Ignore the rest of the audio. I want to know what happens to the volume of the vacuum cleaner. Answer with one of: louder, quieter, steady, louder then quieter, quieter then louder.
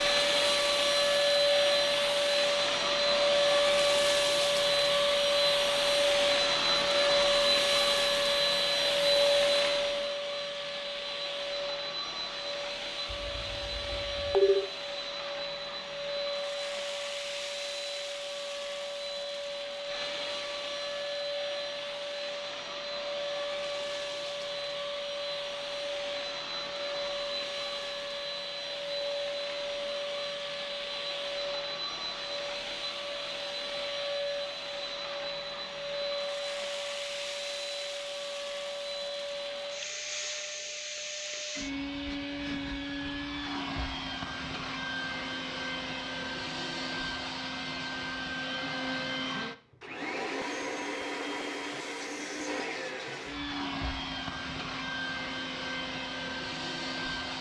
quieter.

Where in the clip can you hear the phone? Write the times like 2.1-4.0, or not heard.
13.1-14.7.